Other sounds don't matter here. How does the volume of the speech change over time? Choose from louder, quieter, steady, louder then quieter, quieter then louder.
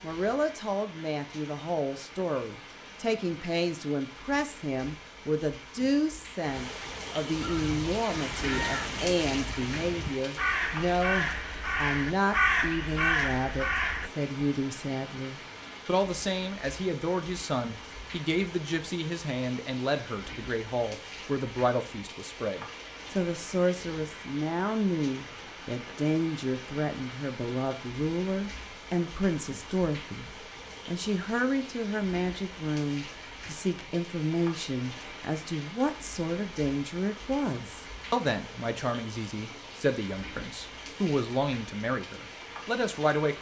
steady.